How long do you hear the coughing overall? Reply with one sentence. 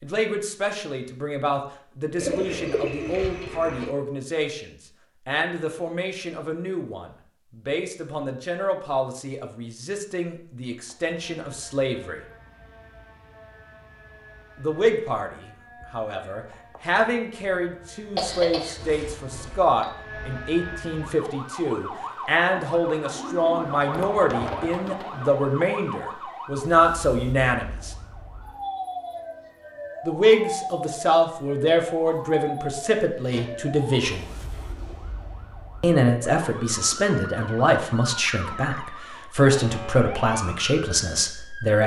You can hear the coughing for 2 seconds altogether.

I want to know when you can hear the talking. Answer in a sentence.
The talking can be heard from 0.0 to 12.2 s, from 14.6 to 27.9 s, from 30.1 to 34.2 s and from 35.8 to 41.8 s.